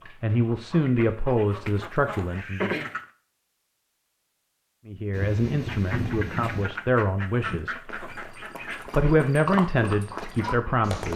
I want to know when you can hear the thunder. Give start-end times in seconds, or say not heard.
5.1-6.7.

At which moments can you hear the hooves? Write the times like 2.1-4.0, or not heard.
7.3-11.1.